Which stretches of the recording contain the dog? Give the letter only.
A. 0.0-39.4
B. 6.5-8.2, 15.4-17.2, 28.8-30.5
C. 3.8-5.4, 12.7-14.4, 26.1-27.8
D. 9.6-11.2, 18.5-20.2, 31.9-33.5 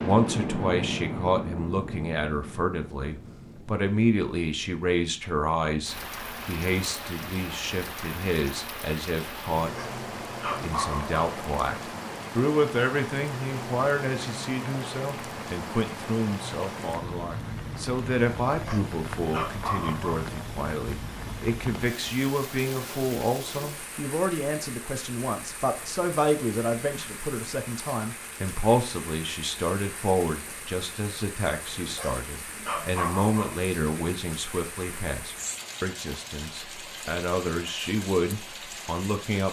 D.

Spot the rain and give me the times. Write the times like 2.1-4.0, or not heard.
0.0-39.4.